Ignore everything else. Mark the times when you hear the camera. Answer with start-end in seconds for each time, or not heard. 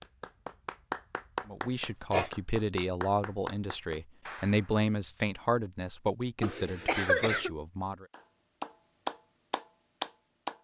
not heard.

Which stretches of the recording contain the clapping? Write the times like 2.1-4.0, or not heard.
0.0-4.8, 8.1-10.5.